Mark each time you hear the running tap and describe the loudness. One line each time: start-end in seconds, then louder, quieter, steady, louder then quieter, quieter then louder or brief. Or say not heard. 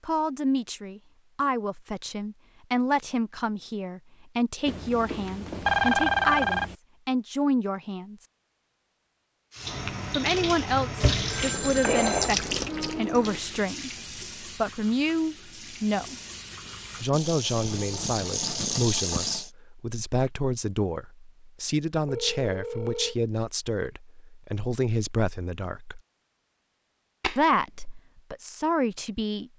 9.5-19.5 quieter then louder.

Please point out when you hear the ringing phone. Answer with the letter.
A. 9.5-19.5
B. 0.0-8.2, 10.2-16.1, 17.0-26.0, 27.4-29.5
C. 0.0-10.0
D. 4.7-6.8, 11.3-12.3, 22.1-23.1
D.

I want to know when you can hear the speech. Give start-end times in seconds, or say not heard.
0.0-8.2, 10.2-16.1, 17.0-26.0, 27.4-29.5.